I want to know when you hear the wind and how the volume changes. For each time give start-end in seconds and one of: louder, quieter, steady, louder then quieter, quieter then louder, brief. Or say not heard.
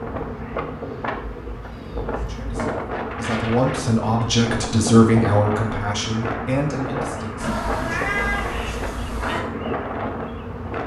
0.0-10.8 steady.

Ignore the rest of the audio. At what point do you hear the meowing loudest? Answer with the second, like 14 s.
8 s.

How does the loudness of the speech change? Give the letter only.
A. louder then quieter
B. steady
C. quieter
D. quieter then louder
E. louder
A.